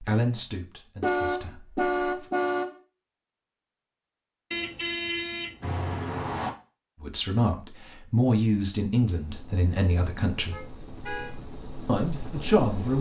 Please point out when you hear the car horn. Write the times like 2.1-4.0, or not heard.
1.0-2.8, 4.5-6.5, 10.5-11.3.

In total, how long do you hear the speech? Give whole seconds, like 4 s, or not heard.
7 s.